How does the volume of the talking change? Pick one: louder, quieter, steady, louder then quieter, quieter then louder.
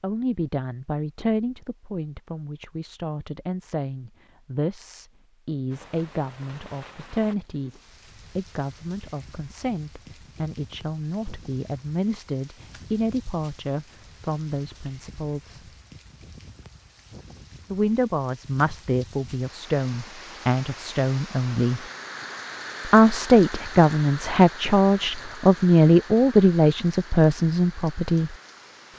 louder.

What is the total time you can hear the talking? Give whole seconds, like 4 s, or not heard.
25 s.